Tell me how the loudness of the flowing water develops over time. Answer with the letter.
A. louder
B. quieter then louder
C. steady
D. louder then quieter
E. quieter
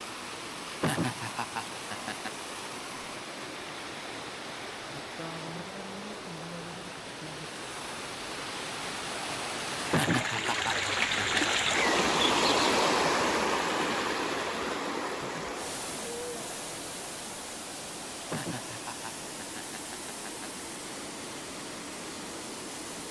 D.